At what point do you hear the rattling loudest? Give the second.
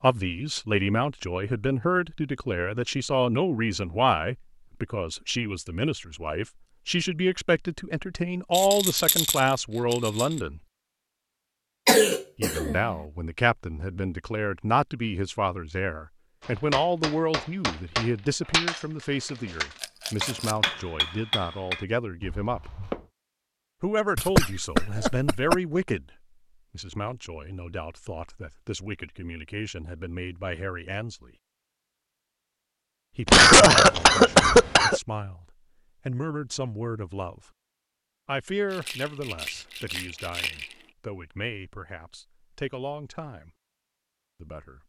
9 s.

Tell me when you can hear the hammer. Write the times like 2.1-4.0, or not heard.
16.4-23.0.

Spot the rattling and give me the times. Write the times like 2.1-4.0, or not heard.
8.5-10.4, 19.8-20.6, 38.6-40.9.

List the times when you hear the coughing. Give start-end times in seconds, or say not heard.
11.8-12.8, 24.1-25.6, 33.2-35.0.